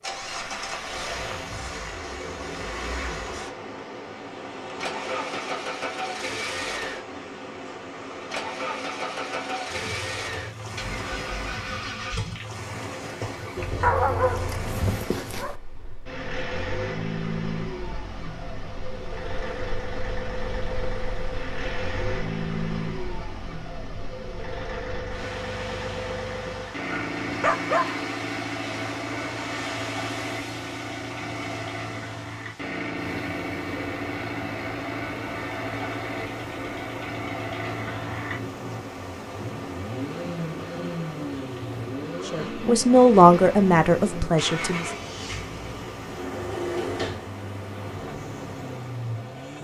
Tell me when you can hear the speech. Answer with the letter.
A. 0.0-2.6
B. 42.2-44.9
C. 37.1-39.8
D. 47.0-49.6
B.